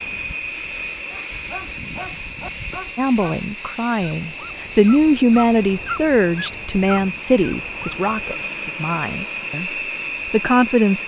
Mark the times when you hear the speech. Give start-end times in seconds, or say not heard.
3.0-9.7, 10.3-11.0.